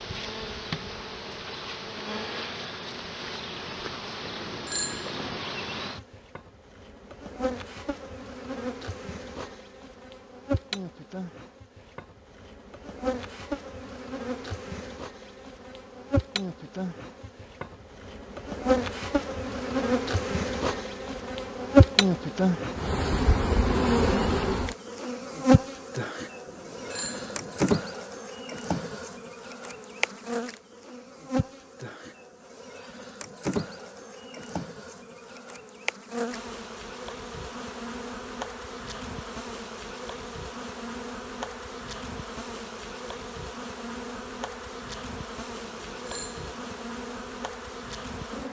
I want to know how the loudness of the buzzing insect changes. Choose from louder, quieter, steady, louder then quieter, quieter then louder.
louder then quieter.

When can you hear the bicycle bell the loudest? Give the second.
5 s.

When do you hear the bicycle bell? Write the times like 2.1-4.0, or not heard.
4.2-5.5, 26.4-27.7, 45.6-46.9.